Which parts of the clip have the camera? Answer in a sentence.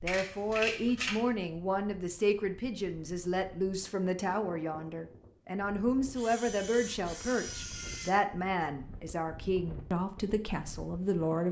You can hear the camera from 0.1 to 1.2 s and from 6.2 to 8.2 s.